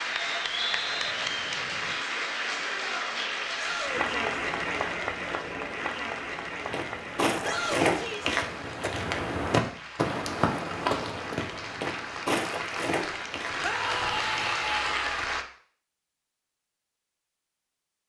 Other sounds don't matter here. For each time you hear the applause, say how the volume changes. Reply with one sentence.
The applause can be heard from 0.0 to 15.4 s, getting quieter then louder.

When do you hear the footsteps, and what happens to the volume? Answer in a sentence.
You can hear the footsteps from 6.7 to 14.4 s, getting quieter.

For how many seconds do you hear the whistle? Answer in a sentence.
The whistle can be heard for 2 seconds in total.